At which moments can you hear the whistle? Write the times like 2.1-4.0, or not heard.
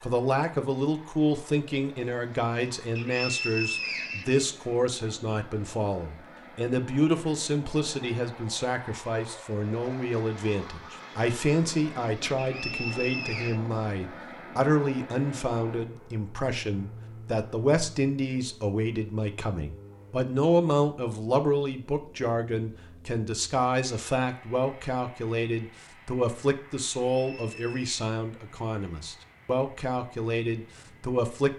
3.0-4.9, 12.3-13.6, 27.1-27.9.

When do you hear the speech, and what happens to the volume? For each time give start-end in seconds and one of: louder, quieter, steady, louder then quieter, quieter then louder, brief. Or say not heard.
0.0-31.5 steady.